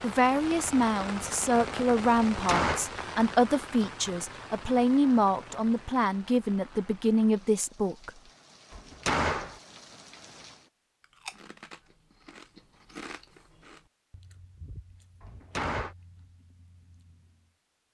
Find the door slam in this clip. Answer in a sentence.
You can hear the door slam from 2.3 to 2.9 s, from 8.7 to 9.6 s and from 15.2 to 15.9 s.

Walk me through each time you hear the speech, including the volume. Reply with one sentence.
The speech can be heard from 0.0 to 8.1 s, at a steady volume.